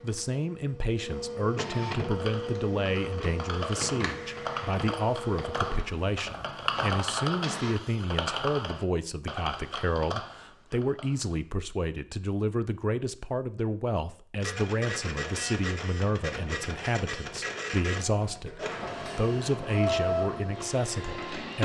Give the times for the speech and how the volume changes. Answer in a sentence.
The speech can be heard from 0.0 to 21.6 s, at a steady volume.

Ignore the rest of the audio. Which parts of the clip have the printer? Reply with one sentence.
The printer can be heard from 0.0 to 7.8 s and from 14.4 to 21.6 s.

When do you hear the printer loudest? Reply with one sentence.
The volume of the printer peaks at 20 seconds.